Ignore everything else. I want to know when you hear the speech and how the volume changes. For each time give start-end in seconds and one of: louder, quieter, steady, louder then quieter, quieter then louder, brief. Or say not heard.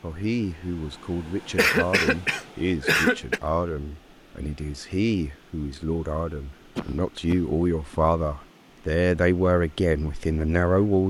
0.0-11.0 louder.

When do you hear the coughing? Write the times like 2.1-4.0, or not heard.
1.6-3.4, 6.8-8.0.